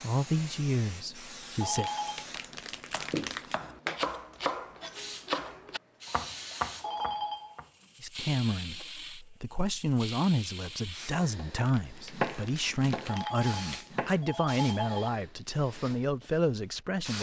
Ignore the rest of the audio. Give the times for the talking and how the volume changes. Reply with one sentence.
The talking can be heard briefly from 0.0 to 1.9 s; and from 8.0 to 17.1 s, at a steady volume.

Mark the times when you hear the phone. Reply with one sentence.
The phone can be heard from 1.6 to 2.2 s, from 6.8 to 7.7 s and from 13.1 to 15.1 s.